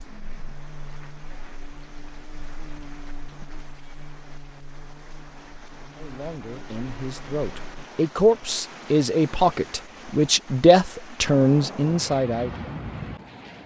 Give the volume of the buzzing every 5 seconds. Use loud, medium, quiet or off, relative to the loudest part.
loud, loud, off.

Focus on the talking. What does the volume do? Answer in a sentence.
The loudness of the talking goes up.